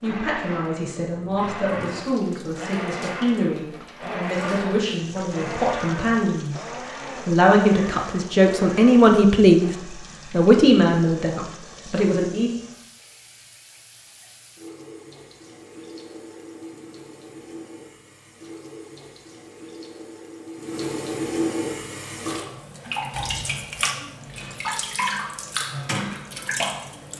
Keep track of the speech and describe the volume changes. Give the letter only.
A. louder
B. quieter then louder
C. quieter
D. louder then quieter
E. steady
A.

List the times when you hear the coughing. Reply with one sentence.
The coughing can't be heard in this clip.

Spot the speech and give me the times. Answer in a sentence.
You can hear the speech from 0.0 to 6.6 s and from 7.2 to 12.5 s.